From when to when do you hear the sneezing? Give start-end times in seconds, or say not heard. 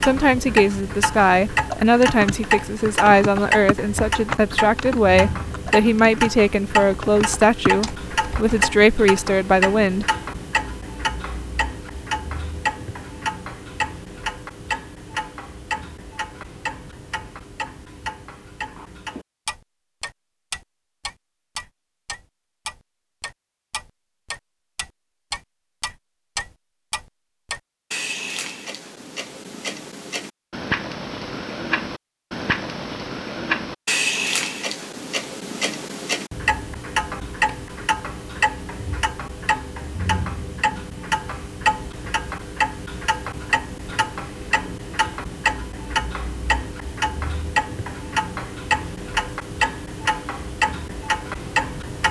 not heard.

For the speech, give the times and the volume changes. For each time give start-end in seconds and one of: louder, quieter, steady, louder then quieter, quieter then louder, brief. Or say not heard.
0.0-10.1 steady.